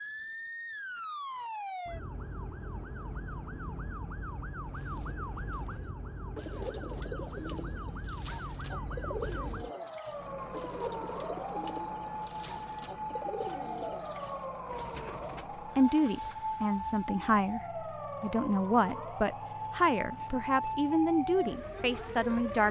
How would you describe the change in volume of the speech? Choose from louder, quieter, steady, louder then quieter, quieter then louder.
steady.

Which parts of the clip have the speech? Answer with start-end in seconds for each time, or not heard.
15.8-22.6.